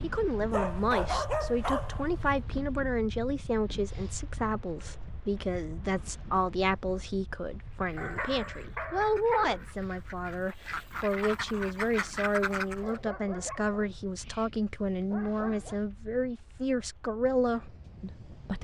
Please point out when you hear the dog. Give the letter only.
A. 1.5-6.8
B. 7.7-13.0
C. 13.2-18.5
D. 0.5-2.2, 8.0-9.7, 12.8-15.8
D.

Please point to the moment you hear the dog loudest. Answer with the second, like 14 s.
1 s.